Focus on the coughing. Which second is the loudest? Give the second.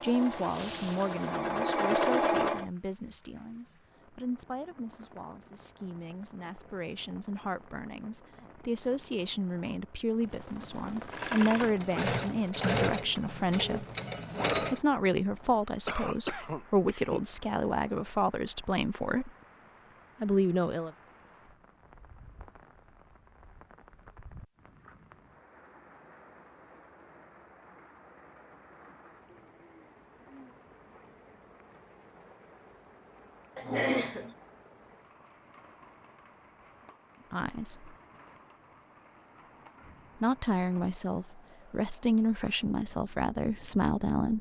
34 s.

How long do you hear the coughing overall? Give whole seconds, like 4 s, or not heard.
2 s.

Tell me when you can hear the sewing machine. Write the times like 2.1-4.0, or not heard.
0.0-2.6, 11.1-14.8.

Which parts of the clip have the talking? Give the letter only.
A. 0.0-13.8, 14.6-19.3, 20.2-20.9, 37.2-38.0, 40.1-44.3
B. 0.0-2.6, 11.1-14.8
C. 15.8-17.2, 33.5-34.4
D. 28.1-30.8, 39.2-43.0
A.